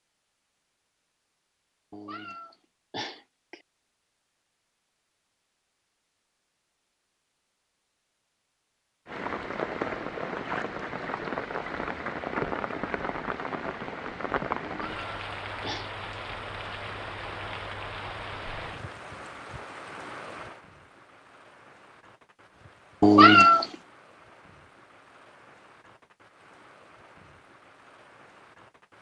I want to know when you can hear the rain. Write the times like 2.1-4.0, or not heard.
9.1-28.9.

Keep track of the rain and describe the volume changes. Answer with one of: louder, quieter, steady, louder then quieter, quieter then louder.
quieter.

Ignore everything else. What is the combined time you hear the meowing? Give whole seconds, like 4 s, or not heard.
4 s.